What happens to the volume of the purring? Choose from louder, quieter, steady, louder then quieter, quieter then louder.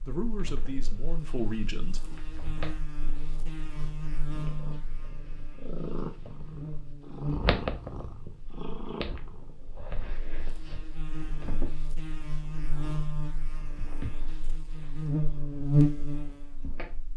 louder then quieter.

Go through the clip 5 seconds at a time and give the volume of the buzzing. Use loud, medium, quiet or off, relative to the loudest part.
quiet, quiet, quiet, loud.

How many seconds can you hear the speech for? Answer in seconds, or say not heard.
2 s.